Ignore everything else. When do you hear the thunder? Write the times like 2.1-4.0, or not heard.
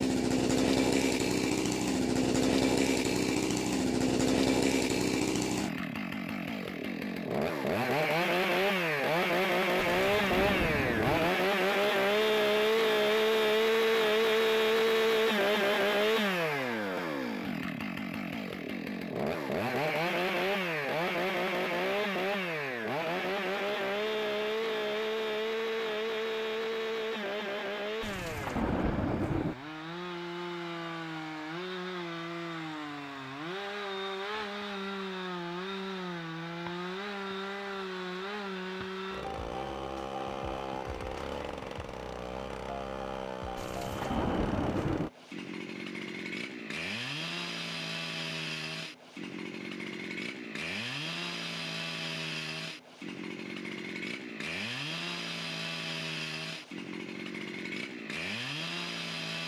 9.8-11.3, 28.0-29.6, 43.5-45.1.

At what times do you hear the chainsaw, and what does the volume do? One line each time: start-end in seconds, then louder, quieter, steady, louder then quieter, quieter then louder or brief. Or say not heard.
0.0-59.4 quieter.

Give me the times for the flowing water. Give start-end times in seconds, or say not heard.
not heard.